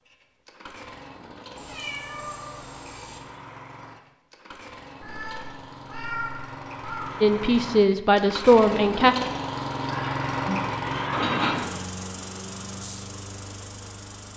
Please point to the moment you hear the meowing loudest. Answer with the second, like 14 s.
11 s.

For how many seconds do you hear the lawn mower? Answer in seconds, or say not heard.
14 s.